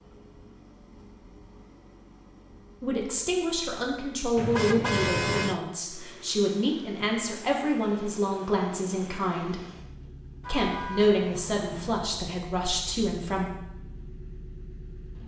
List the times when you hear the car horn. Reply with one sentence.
You can hear the car horn from 4.3 to 5.6 s and from 10.4 to 11.9 s.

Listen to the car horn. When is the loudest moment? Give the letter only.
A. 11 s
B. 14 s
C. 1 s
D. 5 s
D.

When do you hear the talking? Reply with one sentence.
You can hear the talking from 2.8 to 9.6 s and from 10.4 to 13.5 s.